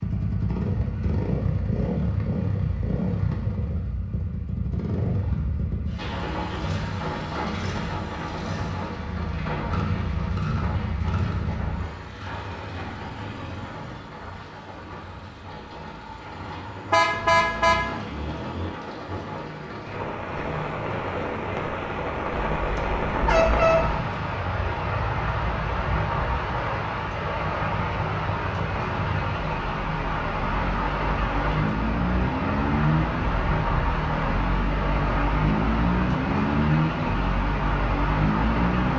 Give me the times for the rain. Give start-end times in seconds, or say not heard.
6.0-38.9.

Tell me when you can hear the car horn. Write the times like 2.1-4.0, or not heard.
16.9-17.8, 22.6-24.0.